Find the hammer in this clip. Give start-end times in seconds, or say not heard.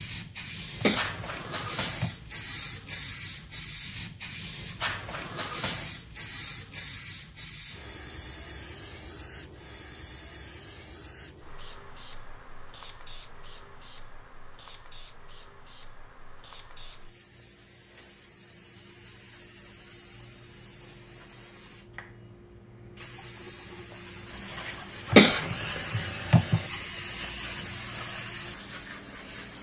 not heard.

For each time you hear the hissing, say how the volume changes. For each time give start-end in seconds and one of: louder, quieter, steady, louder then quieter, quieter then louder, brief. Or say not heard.
0.0-29.5 quieter then louder.